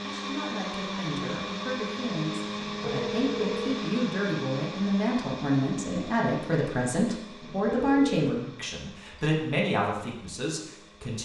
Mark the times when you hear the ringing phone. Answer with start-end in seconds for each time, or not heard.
2.5-3.8, 7.4-8.4.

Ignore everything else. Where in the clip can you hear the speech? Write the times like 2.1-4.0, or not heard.
0.0-11.1.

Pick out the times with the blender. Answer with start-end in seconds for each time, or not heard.
0.0-11.1.